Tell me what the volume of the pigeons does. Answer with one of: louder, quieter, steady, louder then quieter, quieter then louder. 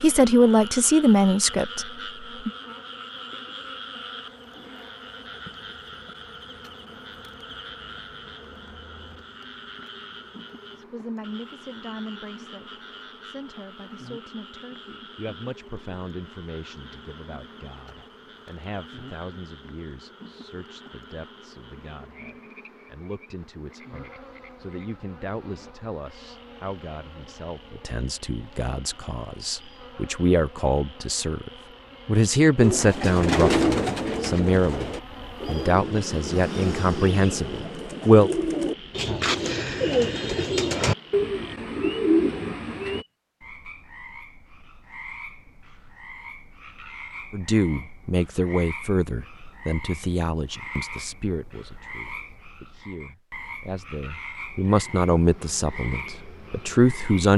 quieter then louder.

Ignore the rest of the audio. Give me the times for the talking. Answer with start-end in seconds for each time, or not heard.
0.0-1.9, 10.8-38.3, 47.3-57.3.